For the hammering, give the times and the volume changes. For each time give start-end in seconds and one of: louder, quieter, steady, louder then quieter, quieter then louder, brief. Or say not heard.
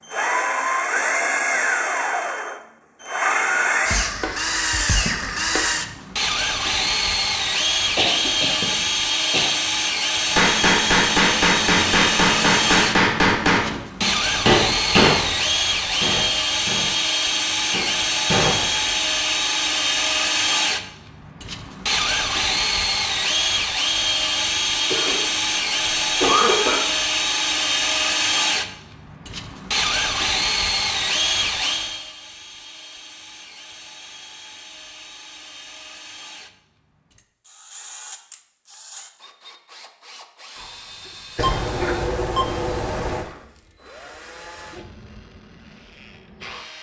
10.3-19.0 quieter then louder.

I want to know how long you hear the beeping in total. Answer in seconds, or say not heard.
2 s.